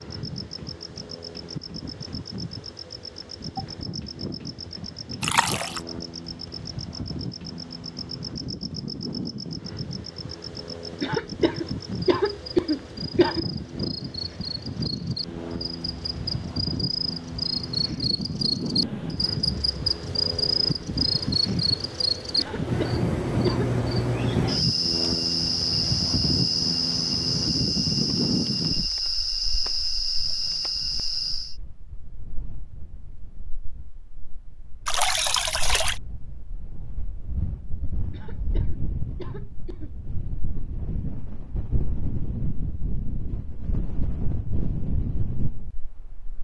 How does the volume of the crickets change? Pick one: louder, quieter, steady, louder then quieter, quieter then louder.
louder.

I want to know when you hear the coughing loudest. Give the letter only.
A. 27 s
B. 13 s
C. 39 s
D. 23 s
B.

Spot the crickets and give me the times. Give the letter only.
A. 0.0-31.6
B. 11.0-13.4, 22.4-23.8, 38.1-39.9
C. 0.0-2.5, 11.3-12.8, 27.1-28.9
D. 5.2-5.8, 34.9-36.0
A.